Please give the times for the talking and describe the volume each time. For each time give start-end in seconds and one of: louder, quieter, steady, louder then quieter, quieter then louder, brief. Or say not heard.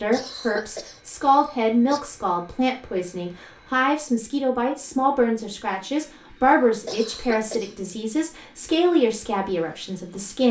0.0-10.4 steady.